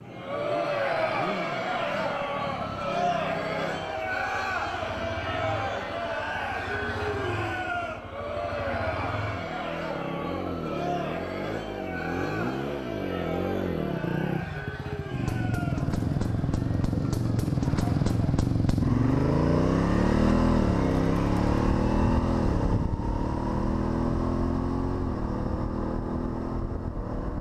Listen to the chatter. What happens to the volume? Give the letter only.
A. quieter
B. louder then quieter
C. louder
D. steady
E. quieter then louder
A.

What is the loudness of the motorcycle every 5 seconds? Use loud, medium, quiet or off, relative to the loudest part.
quiet, quiet, medium, loud, loud, medium.